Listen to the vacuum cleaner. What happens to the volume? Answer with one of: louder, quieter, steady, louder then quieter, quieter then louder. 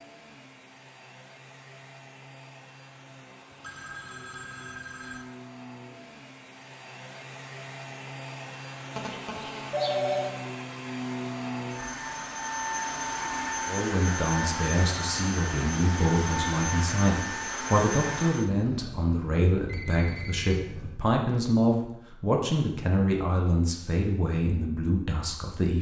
louder.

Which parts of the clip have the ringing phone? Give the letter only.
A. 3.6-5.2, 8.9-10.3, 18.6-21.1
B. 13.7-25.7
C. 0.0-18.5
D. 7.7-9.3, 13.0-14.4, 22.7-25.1
A.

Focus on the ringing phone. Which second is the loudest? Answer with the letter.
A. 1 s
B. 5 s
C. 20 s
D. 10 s
D.